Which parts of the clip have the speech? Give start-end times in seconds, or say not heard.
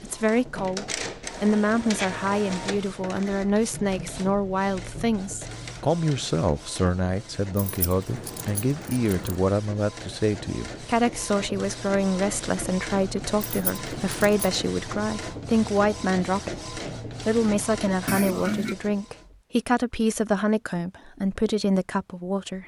0.0-22.6.